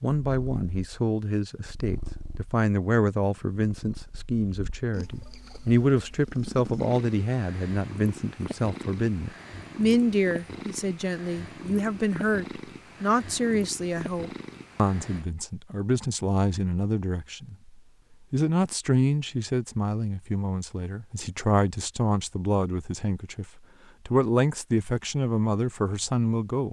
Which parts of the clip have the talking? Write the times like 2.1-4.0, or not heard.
0.0-17.7, 18.3-26.6.